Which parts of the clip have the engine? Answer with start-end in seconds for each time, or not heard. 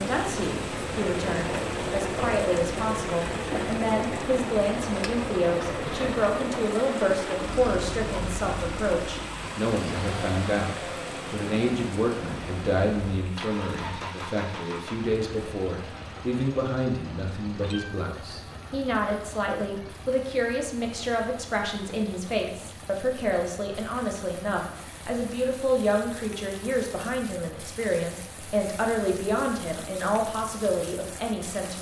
0.0-31.7.